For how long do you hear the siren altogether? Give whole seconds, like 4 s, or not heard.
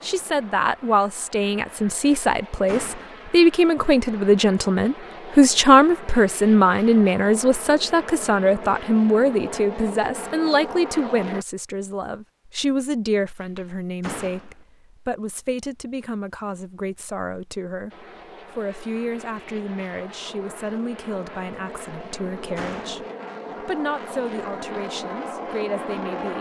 not heard.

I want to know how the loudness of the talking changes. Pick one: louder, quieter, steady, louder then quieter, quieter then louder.
quieter.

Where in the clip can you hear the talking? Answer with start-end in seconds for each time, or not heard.
0.0-26.3.